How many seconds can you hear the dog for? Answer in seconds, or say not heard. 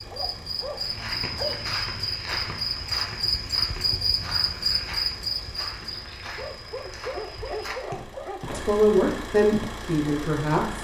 4 s.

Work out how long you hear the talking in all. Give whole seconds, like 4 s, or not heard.
2 s.